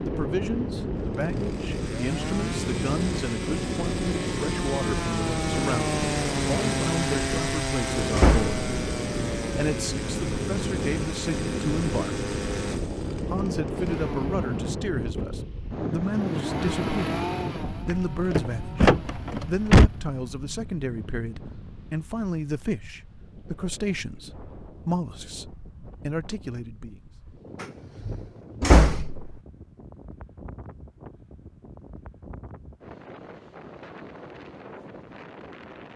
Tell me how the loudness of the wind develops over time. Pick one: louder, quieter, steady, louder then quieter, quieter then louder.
quieter.